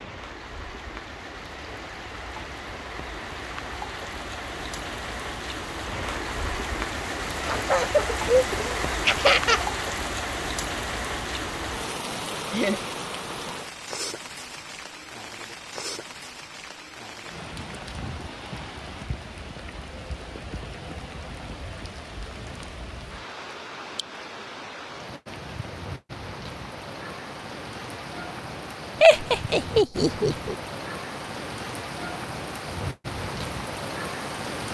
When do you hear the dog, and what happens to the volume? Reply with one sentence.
The dog can't be heard in this clip.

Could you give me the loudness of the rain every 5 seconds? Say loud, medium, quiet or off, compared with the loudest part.
medium, loud, loud, medium, medium, medium, loud.